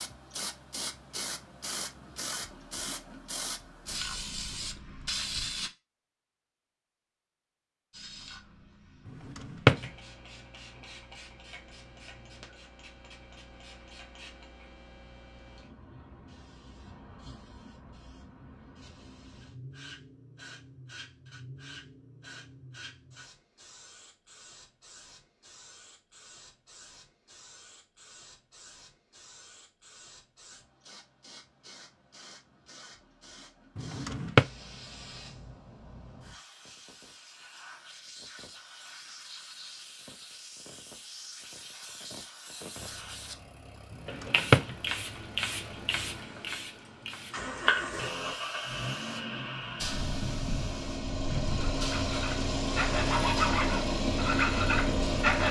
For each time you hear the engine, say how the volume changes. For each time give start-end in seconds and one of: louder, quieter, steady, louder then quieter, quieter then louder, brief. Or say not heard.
42.8-55.4 louder.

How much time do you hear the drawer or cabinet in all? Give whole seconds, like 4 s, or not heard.
2 s.